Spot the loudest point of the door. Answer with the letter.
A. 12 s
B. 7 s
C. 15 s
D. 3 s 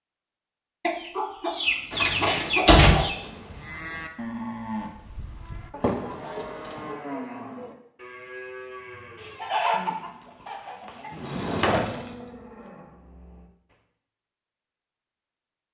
D.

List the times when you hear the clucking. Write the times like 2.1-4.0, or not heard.
0.8-3.1, 9.2-11.3.